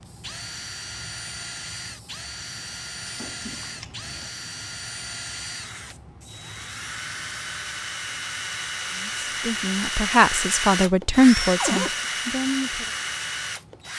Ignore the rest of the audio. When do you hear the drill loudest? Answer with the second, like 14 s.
10 s.